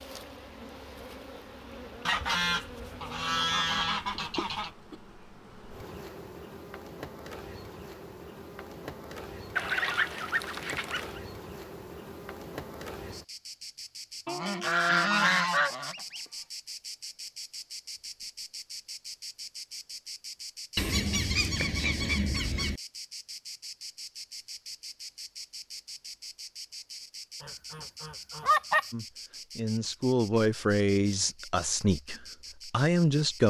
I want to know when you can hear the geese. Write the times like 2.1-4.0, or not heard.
2.0-4.7, 9.6-11.2, 14.2-16.2, 20.8-22.8, 27.4-28.9.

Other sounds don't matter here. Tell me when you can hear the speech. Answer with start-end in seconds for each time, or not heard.
28.9-33.4.